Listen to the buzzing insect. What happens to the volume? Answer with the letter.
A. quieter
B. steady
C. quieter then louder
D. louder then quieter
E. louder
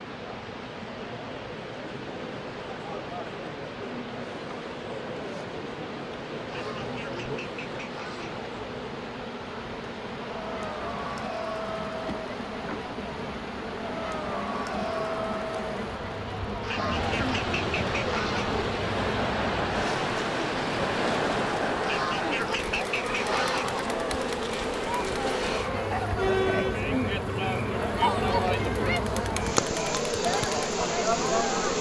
E.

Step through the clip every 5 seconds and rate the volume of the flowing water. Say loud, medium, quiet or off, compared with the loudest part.
medium, medium, medium, loud, loud, off, off.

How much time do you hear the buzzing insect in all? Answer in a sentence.
You can hear the buzzing insect for 32 seconds altogether.